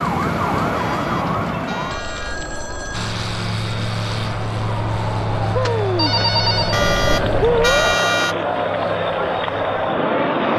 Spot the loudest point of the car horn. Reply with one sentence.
The loudest moment of the car horn is at 8 seconds.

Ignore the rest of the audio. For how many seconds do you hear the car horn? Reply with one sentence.
You can hear the car horn for 3 seconds altogether.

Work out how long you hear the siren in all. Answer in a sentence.
You can hear the siren for 8 seconds altogether.